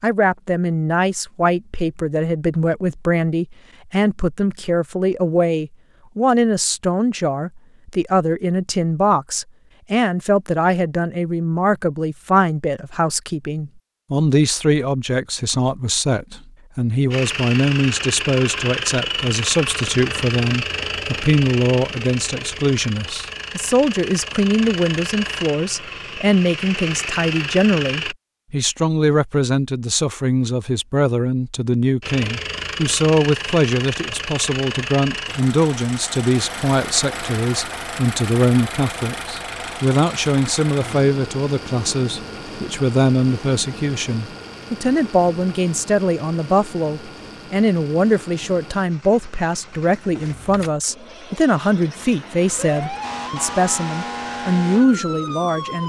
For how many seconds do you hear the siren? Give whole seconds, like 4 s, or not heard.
3 s.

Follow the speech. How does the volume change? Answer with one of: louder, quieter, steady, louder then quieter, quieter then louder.
steady.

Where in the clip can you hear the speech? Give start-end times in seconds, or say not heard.
0.0-55.8.